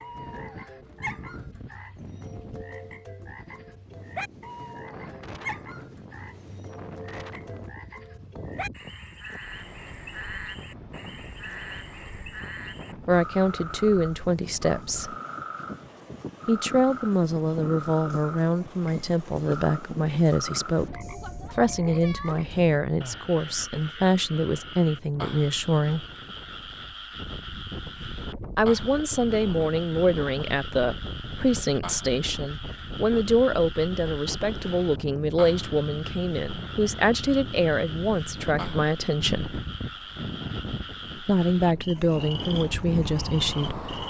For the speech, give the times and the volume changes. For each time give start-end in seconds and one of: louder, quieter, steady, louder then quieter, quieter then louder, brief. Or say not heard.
13.1-15.2 brief
16.4-26.1 steady
28.6-39.6 steady
41.1-43.8 brief.